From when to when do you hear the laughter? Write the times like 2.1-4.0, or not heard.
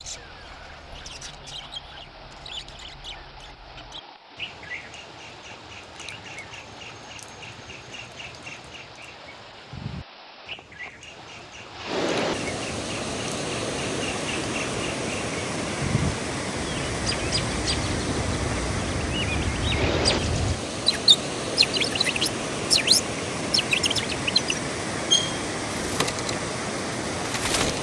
not heard.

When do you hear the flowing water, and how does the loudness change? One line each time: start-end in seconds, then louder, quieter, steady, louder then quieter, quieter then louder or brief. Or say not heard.
0.0-27.7 louder.